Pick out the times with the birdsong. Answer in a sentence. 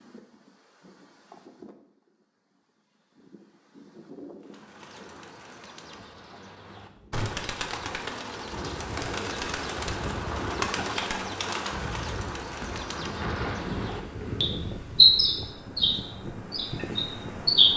You can hear the birdsong from 4.5 to 17.7 s.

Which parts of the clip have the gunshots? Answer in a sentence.
The gunshots can be heard from 7.1 to 7.5 s.